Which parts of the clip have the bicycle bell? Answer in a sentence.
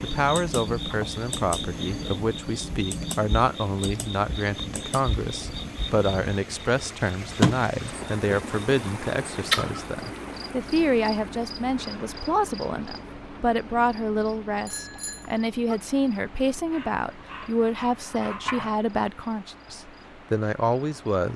The bicycle bell can be heard from 14.7 to 15.8 s.